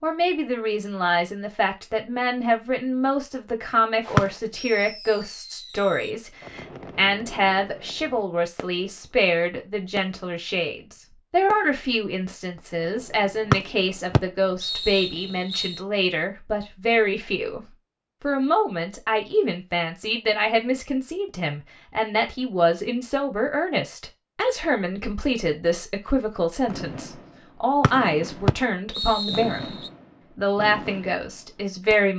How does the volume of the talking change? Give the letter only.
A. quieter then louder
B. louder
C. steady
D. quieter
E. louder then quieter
C.